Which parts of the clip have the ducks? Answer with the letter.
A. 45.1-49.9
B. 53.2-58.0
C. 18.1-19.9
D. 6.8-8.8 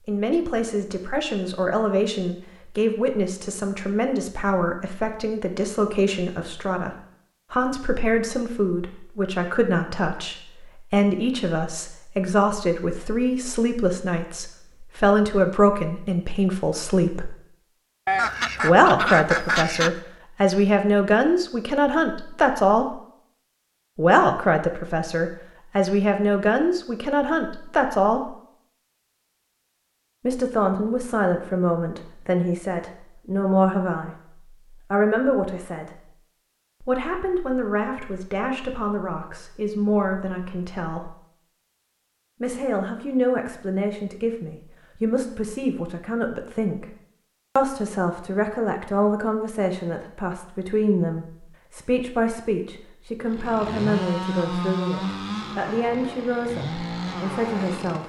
C.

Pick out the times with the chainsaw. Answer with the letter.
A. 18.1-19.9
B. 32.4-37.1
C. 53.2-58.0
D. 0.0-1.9
C.